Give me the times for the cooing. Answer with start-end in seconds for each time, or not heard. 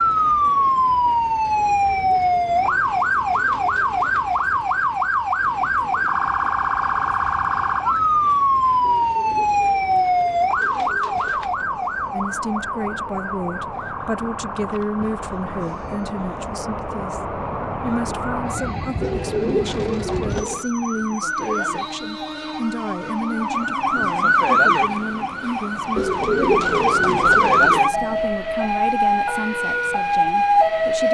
1.6-4.4, 8.8-11.7, 19.0-20.6, 25.9-27.8.